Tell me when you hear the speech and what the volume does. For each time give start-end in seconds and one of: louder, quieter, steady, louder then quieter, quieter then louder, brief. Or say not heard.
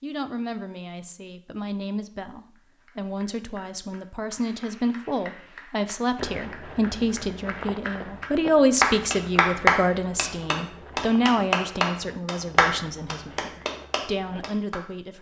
0.0-15.1 louder then quieter.